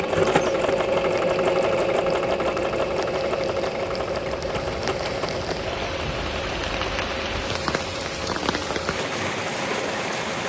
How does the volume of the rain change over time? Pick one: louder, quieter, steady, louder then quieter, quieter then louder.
louder.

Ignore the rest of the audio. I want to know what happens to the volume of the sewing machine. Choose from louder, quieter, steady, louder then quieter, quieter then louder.
quieter.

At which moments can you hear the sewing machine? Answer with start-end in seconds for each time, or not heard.
0.0-10.4.